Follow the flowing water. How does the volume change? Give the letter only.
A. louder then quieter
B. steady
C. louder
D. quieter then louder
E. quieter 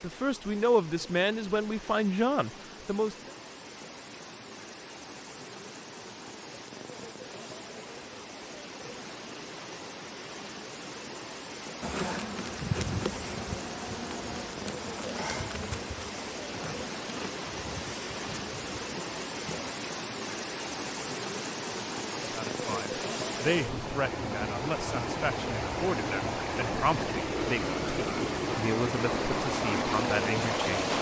C.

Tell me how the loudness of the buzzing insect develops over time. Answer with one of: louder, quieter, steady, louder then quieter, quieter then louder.
quieter.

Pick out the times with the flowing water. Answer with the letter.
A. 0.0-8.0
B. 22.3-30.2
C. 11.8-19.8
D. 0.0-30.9
D.